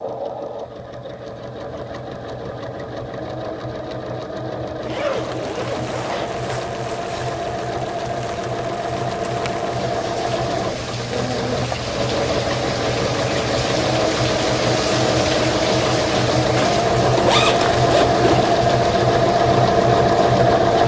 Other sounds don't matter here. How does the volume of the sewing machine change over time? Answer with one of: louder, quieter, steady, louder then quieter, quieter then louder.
louder.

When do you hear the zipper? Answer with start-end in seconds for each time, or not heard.
4.8-6.5, 16.6-18.6.